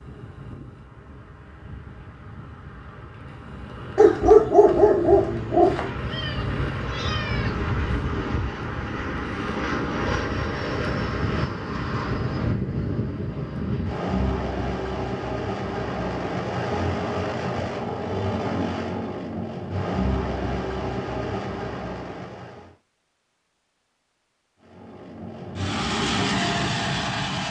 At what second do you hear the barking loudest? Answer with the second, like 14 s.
4 s.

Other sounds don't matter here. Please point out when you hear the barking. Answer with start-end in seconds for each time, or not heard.
4.0-5.9.